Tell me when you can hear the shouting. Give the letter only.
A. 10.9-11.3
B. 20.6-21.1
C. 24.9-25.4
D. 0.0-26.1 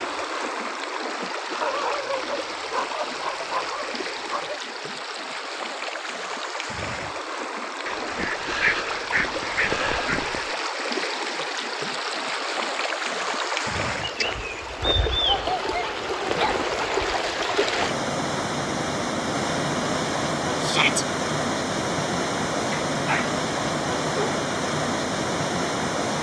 B.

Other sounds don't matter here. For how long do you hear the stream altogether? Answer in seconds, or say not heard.
26 s.